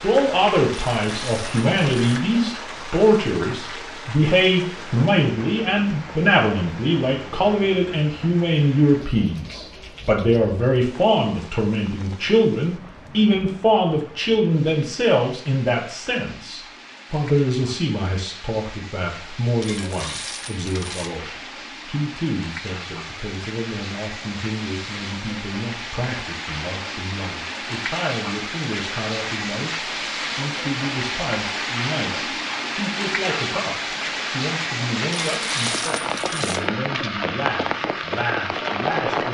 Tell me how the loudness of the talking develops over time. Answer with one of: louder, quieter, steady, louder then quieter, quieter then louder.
quieter.